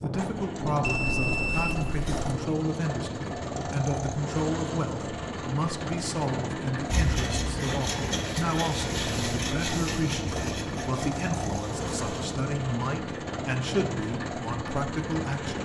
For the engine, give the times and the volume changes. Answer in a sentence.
You can hear the engine from 0.0 to 15.5 s, at a steady volume.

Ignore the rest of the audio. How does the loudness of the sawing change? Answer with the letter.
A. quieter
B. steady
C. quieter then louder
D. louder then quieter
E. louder
A.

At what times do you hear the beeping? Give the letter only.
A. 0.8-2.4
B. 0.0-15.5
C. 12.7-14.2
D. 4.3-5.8
A.